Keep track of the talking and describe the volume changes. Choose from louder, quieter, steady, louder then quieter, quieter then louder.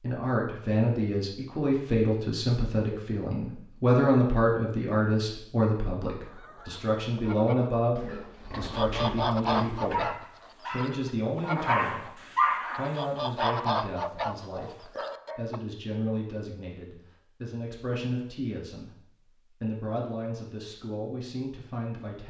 quieter.